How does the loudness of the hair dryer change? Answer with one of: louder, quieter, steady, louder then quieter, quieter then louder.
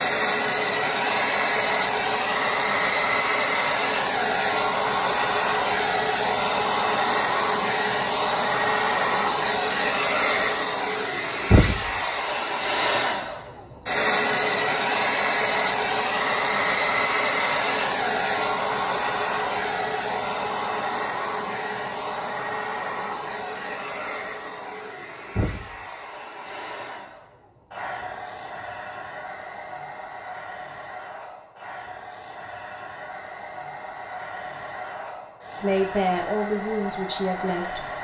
quieter.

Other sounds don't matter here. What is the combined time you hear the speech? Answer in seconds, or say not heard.
2 s.